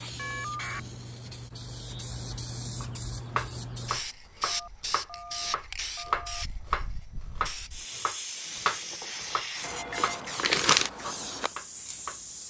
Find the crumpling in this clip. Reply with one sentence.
The crumpling can be heard from 9.6 to 10.9 s.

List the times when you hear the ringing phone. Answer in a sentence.
You can hear the ringing phone from 0.1 to 0.8 s, from 4.5 to 6.5 s and from 8.4 to 10.3 s.